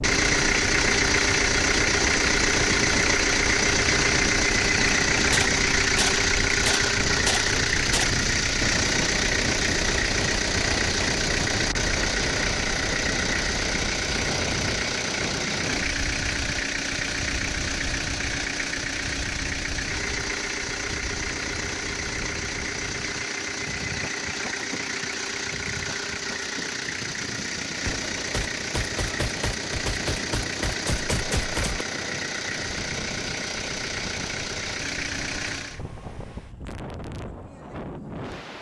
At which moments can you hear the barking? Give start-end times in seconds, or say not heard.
not heard.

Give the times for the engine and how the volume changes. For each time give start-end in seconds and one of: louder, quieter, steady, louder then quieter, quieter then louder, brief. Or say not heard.
0.0-35.8 quieter.